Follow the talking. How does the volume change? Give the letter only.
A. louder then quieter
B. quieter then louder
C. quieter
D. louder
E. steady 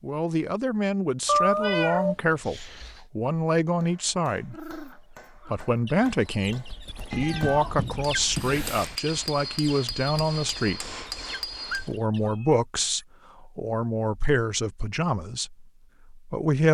E.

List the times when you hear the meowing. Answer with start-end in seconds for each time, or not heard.
1.2-3.0, 7.1-8.9, 11.7-12.6.